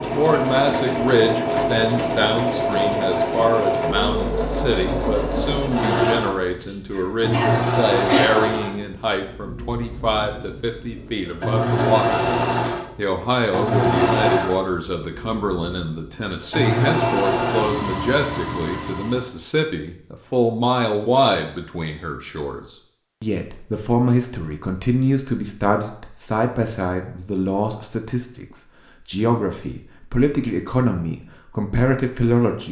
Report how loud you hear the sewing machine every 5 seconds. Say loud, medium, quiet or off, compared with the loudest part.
loud, loud, loud, loud, off, off, off.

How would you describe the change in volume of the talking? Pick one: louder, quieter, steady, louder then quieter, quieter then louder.
steady.